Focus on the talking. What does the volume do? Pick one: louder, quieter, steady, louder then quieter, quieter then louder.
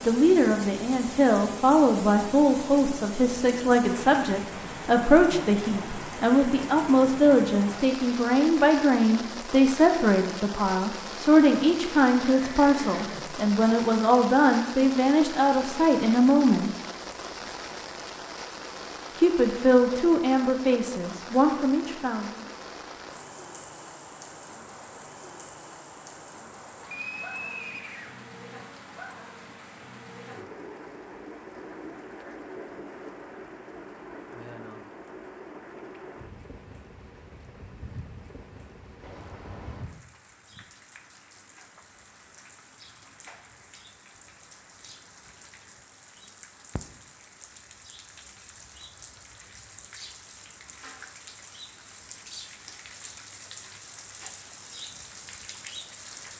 steady.